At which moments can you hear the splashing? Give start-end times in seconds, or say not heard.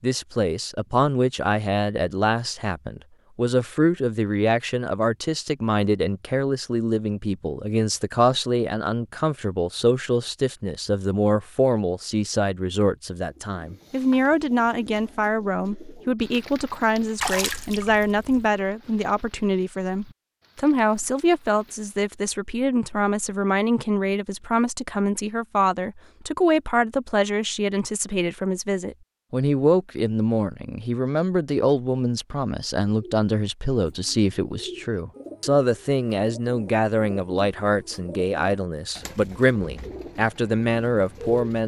17.2-18.5.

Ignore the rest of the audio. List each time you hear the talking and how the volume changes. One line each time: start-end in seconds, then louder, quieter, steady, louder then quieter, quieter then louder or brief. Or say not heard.
0.0-41.6 steady.